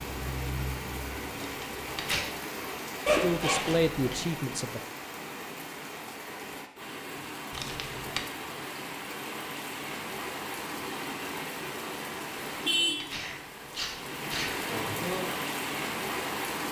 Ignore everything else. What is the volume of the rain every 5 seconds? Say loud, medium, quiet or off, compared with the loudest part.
medium, medium, loud, loud.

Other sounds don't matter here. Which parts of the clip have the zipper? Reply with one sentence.
You can hear the zipper from 3.0 to 4.2 s.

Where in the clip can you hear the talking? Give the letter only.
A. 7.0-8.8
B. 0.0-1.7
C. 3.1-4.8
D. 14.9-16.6
C.